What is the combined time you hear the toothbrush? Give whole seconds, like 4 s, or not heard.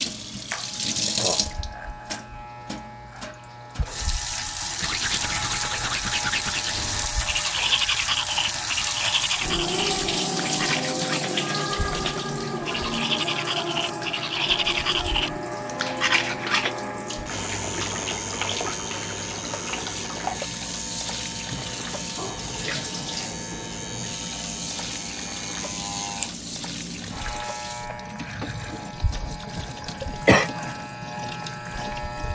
12 s.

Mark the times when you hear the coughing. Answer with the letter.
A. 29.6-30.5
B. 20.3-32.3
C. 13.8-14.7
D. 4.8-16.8
A.